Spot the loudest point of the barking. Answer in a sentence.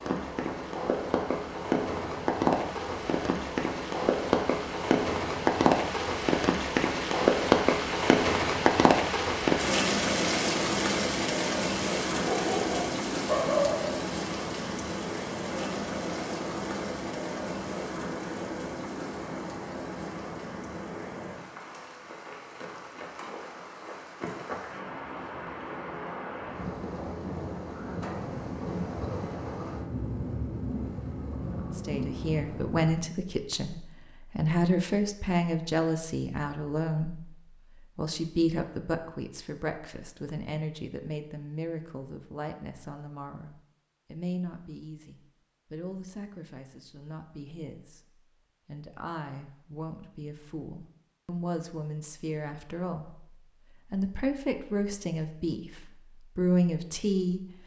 The volume of the barking peaks at 13 seconds.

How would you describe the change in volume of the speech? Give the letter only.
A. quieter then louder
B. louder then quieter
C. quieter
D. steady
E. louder
A.